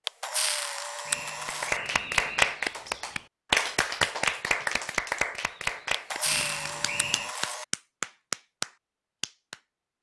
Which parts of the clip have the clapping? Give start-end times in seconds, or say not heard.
1.4-9.6.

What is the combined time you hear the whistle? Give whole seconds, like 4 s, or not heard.
3 s.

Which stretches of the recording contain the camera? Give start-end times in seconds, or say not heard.
0.1-1.8, 5.9-7.7.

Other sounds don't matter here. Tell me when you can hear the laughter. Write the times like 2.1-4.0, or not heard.
not heard.